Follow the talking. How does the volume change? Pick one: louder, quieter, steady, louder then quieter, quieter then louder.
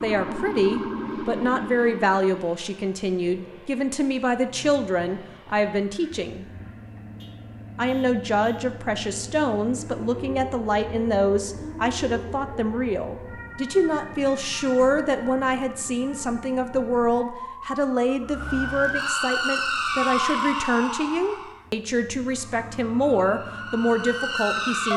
steady.